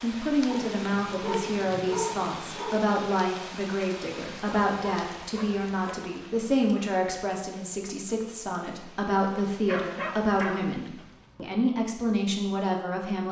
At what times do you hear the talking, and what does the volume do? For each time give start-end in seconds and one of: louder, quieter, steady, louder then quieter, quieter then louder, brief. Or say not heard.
0.0-13.2 steady.